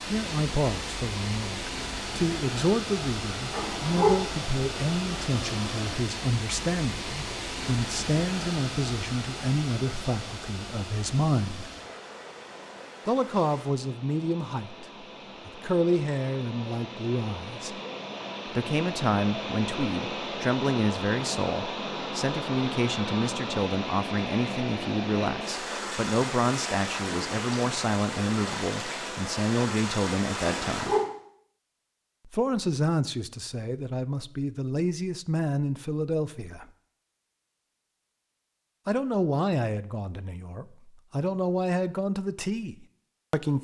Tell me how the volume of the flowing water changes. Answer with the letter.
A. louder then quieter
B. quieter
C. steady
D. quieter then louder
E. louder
D.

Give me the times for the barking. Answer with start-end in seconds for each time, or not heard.
3.5-4.1, 30.4-31.0.